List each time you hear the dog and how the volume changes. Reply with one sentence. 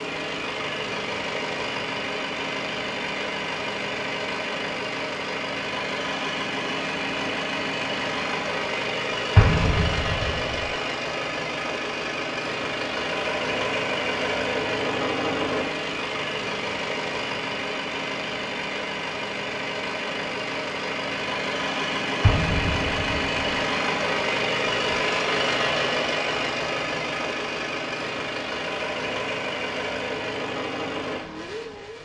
You can't hear the dog here.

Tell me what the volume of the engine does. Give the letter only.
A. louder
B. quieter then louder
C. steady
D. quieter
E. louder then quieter
C.